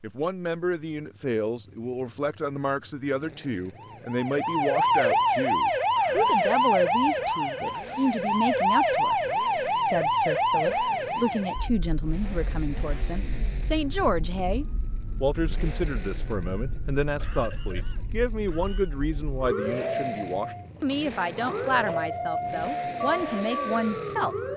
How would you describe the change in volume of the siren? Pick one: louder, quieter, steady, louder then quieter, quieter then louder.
quieter then louder.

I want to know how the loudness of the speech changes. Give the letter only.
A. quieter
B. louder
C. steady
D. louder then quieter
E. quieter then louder
C.